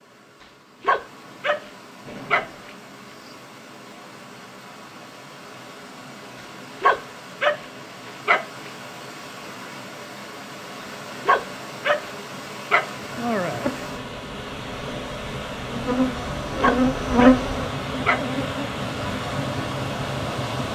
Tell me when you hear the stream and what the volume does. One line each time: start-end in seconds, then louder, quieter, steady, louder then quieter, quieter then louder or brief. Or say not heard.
0.0-20.6 louder.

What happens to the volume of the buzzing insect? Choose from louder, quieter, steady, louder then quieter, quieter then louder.
louder then quieter.